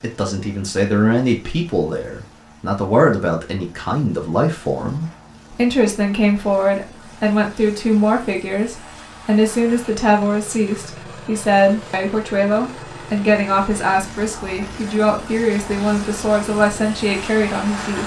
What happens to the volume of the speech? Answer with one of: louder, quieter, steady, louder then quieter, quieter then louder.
steady.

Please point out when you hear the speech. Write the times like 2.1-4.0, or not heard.
0.0-18.0.